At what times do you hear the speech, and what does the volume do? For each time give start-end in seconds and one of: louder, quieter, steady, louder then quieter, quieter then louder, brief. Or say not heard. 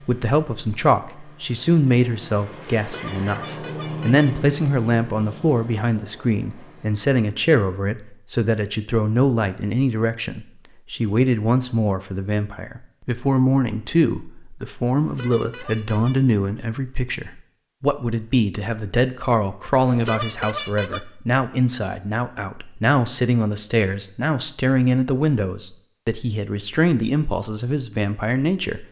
0.1-28.8 steady.